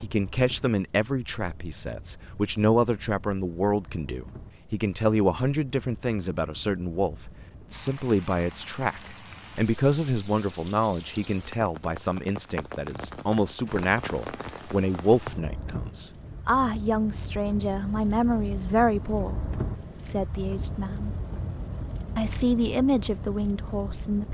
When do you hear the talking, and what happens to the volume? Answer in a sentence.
The talking can be heard from 0.0 to 21.1 s, at a steady volume; and briefly from 22.1 to 24.2 s.